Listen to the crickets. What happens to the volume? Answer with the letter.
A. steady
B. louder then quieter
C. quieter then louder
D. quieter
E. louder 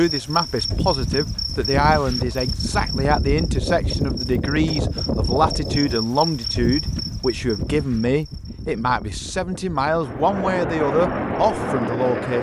D.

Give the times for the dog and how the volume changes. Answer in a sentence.
You can't hear the dog here.